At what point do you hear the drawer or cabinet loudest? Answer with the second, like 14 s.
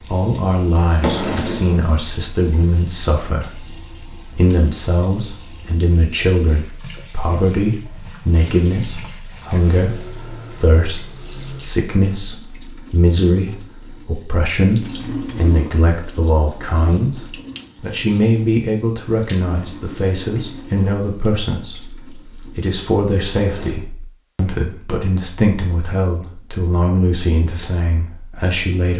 1 s.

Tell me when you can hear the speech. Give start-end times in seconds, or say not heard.
0.0-28.9.